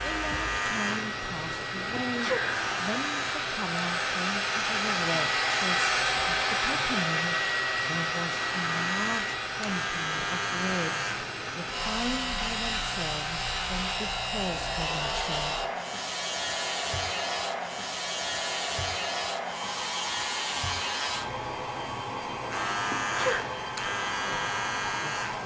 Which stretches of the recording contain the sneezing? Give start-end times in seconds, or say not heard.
1.9-2.7, 22.9-23.4.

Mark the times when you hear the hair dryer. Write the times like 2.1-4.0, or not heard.
0.0-25.4.